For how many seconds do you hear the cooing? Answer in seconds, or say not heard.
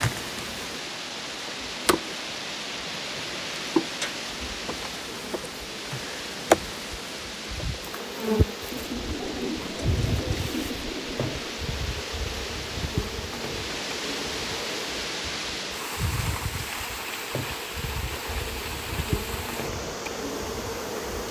3 s.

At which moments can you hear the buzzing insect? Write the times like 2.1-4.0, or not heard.
0.0-21.2.